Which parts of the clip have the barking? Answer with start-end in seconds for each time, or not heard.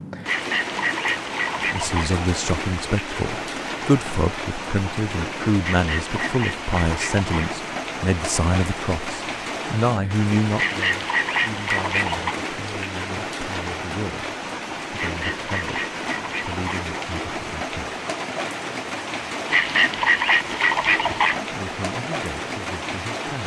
not heard.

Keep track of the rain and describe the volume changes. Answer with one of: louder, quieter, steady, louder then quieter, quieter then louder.
steady.